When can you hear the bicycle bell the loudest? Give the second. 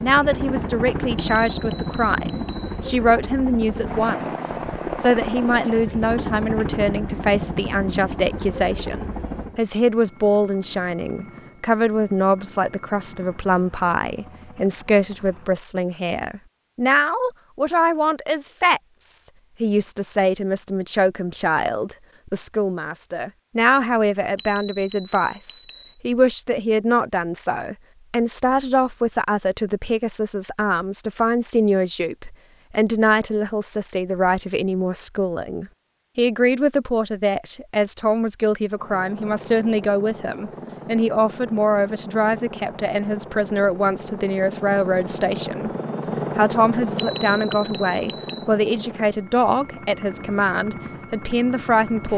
47 s.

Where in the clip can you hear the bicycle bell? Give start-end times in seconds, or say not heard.
1.1-2.7, 24.4-25.9, 47.0-48.5.